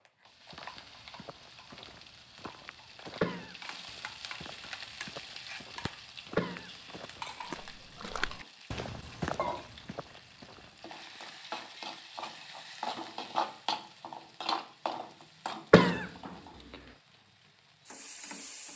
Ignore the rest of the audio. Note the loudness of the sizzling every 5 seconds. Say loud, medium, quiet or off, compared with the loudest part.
medium, medium, loud, medium.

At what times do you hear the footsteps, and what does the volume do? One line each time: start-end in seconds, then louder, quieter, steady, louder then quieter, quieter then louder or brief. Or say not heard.
0.5-11.2 louder.